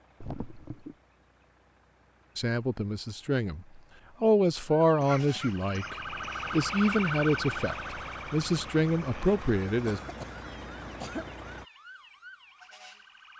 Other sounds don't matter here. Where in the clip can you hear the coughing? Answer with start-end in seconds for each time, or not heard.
0.2-0.9, 5.0-6.5, 9.8-11.3.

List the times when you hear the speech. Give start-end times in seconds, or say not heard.
2.4-10.0.